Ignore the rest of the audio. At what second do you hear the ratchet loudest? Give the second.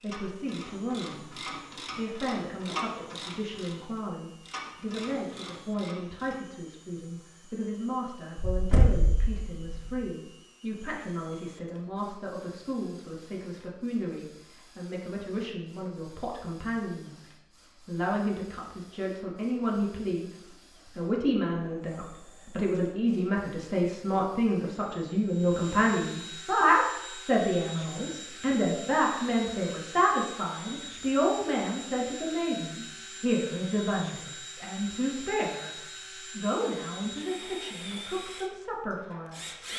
3 s.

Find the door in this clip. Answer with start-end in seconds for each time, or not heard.
8.3-10.0.